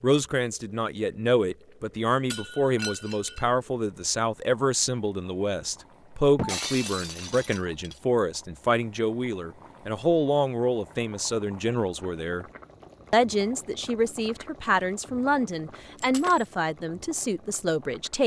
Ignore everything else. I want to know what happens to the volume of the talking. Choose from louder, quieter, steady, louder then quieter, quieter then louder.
steady.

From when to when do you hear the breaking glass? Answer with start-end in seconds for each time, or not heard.
2.3-3.5, 6.3-8.0, 15.9-16.4.